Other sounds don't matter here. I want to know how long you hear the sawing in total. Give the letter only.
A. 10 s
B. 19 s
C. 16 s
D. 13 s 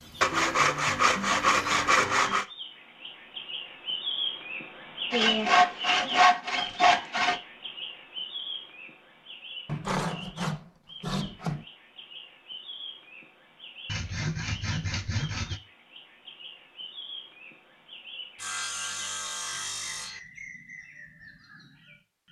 A.